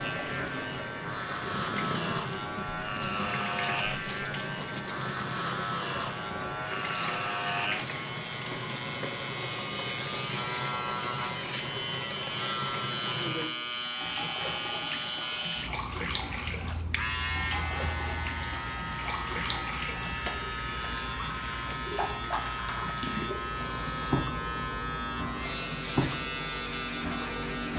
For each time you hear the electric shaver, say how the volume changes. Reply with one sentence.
You can hear the electric shaver from 0.0 to 27.7 s, at a steady volume.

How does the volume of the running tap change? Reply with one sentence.
The loudness of the running tap stays about the same.